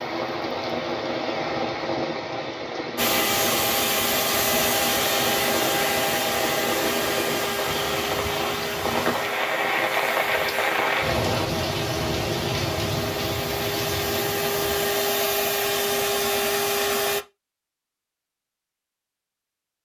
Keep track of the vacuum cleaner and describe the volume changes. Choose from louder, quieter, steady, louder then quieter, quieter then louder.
quieter then louder.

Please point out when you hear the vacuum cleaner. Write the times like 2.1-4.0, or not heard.
3.0-17.2.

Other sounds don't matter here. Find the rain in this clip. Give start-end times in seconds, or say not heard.
0.0-15.1.